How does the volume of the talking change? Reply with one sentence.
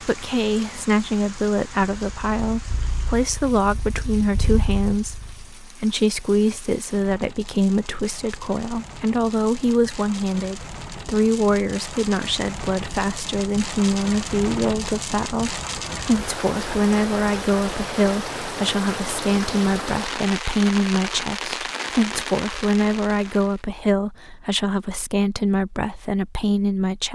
The loudness of the talking stays about the same.